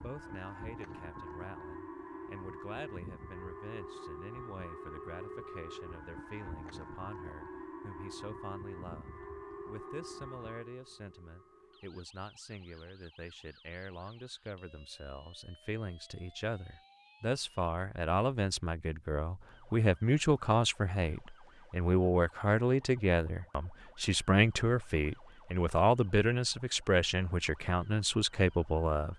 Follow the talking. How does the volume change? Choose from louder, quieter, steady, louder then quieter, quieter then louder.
louder.